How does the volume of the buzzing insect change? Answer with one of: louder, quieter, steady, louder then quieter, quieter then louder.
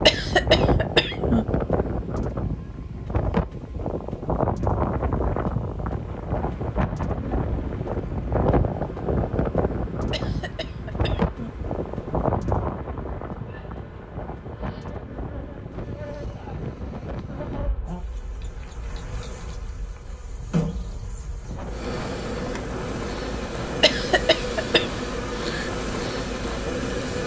louder.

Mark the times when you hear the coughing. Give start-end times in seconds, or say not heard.
0.1-1.4, 10.1-11.6, 23.8-24.9.